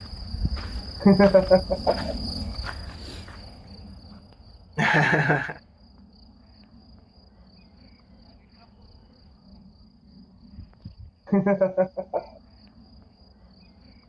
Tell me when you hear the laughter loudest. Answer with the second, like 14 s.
1 s.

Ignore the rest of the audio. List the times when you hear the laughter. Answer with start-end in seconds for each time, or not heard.
1.0-2.1, 4.8-5.5, 11.2-12.2.